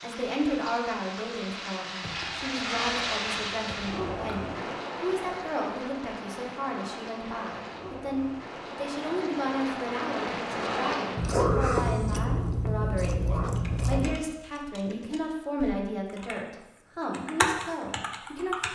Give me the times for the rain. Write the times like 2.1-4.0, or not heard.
0.0-11.2.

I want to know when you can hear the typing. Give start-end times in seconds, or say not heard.
13.4-16.4, 17.1-18.6.